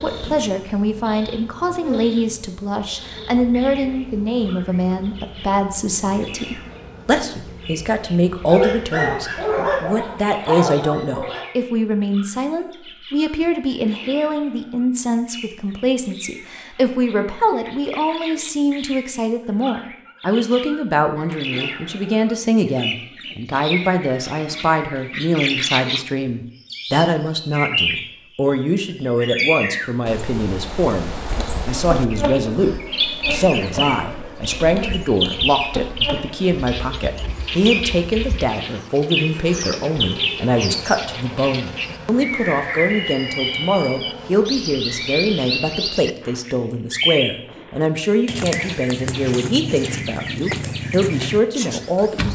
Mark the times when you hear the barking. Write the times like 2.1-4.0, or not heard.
8.4-11.4.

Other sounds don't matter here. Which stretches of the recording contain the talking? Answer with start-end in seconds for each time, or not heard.
0.0-52.2.